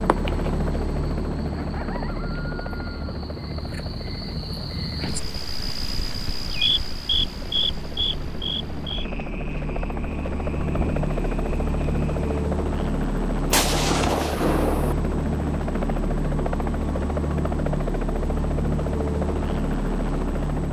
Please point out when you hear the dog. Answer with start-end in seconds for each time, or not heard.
not heard.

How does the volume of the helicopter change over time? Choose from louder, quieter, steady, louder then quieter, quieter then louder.
quieter then louder.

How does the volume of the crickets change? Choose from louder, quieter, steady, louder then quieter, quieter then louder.
louder then quieter.